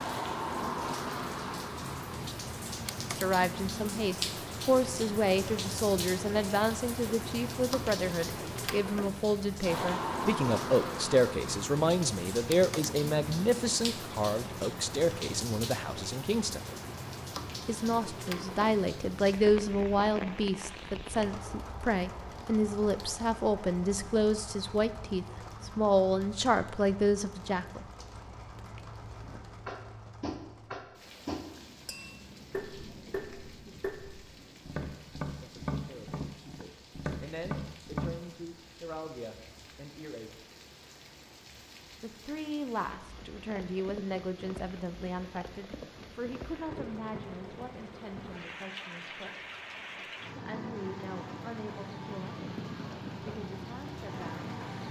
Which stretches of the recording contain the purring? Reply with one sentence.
The purring can't be heard in this clip.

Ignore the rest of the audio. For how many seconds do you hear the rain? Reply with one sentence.
You can hear the rain for 55 seconds altogether.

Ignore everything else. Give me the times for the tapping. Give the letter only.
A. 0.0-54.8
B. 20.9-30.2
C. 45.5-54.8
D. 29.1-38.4
D.